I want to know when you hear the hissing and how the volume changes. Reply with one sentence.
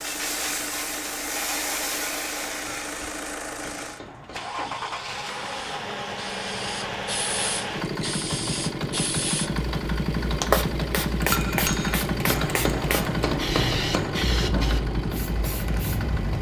The hissing can be heard from 0.0 to 16.3 s, getting quieter then louder.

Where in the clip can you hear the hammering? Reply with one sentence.
You can hear the hammering from 2.6 to 5.0 s and from 11.2 to 14.2 s.